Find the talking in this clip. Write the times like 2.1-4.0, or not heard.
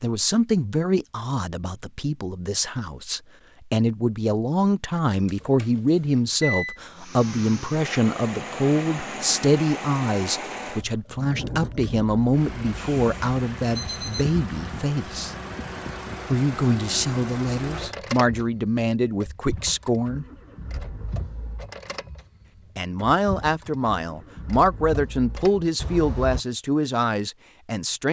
0.0-15.3, 16.3-20.2, 22.8-28.0.